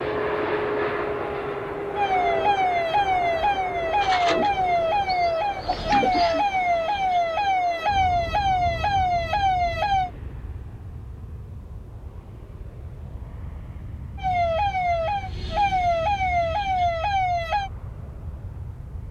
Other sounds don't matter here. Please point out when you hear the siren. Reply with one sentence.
You can hear the siren from 1.9 to 10.1 s and from 14.2 to 17.7 s.